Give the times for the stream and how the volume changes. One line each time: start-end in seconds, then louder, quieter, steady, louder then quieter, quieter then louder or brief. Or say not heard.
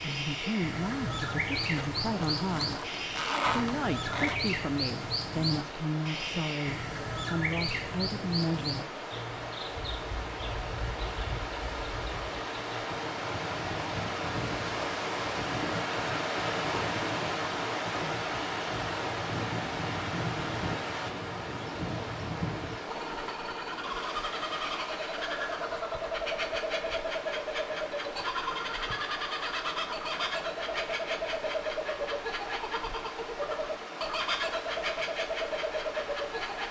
0.0-36.6 louder then quieter.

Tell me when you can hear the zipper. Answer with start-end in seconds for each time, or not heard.
1.8-4.4.